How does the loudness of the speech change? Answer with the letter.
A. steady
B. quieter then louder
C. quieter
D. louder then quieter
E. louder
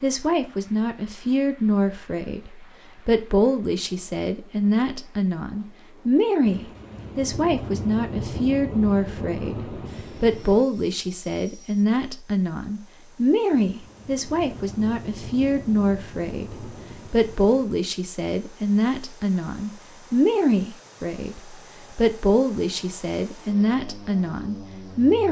A.